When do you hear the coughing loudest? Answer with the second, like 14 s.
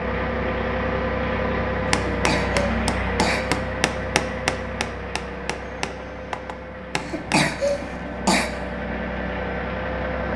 8 s.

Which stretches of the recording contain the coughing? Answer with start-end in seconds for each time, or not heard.
2.0-3.5, 7.0-8.5.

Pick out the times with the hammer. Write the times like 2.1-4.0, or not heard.
1.9-7.5.